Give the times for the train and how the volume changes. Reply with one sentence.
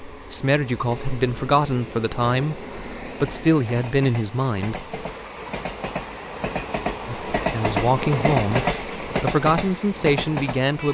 You can hear the train from 0.0 to 10.9 s, getting louder.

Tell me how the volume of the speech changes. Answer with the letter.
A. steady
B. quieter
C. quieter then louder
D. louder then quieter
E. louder
A.